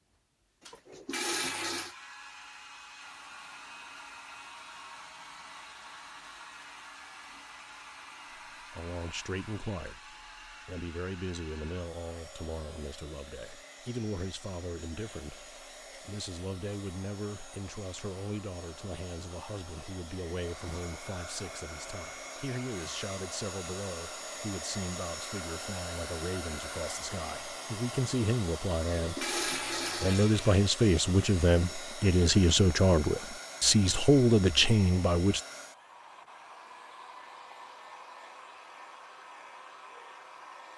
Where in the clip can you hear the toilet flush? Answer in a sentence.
The toilet flush can be heard from 0.7 to 1.9 s and from 29.0 to 30.6 s.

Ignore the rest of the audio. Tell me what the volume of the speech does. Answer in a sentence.
The volume of the speech goes up.